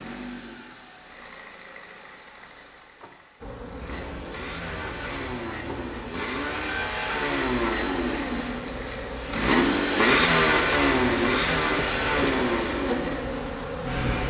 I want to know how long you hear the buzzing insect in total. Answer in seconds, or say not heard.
11 s.